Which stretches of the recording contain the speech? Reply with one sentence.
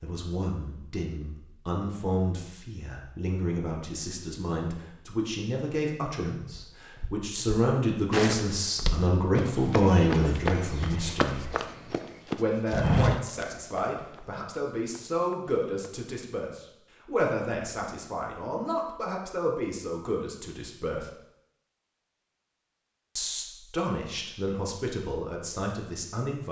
You can hear the speech from 0.0 to 11.6 s, from 12.3 to 21.1 s and from 23.1 to 26.4 s.